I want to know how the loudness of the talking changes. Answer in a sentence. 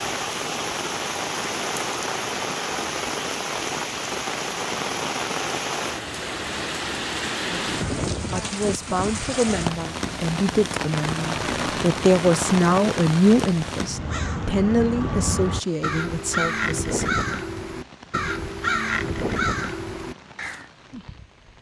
The volume of the talking goes up, then down.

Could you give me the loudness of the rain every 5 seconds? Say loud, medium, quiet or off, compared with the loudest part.
loud, loud, loud, quiet, quiet.